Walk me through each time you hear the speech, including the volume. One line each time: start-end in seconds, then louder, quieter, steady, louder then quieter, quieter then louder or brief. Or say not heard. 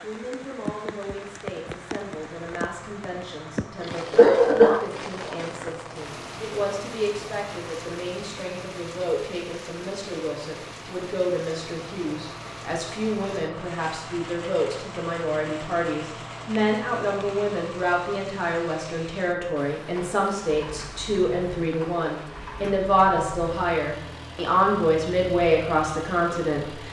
0.0-26.8 louder.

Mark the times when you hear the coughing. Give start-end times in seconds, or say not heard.
3.9-5.7.